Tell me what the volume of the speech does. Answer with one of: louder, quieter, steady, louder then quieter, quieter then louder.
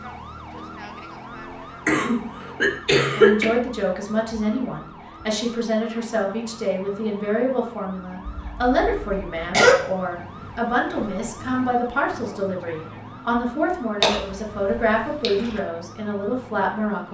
steady.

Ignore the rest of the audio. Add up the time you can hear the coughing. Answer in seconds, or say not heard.
4 s.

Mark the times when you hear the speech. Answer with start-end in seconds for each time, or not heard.
3.1-17.0.